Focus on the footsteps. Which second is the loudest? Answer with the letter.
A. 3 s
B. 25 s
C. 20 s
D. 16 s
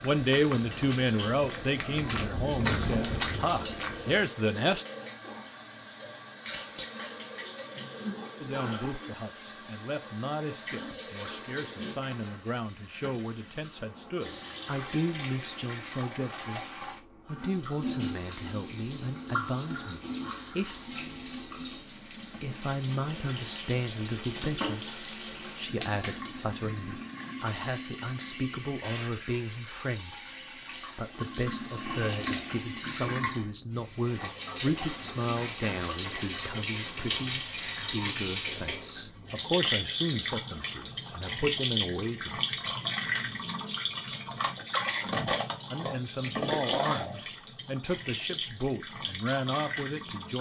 A.